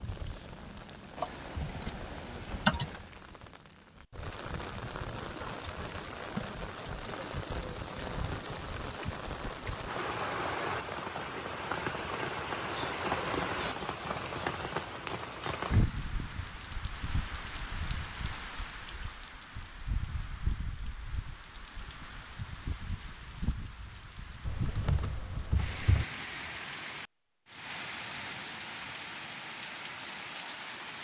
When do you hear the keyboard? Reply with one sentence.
The keyboard can be heard from 1.1 to 2.9 s and from 24.4 to 26.1 s.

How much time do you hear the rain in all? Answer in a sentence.
You can hear the rain for 31 seconds altogether.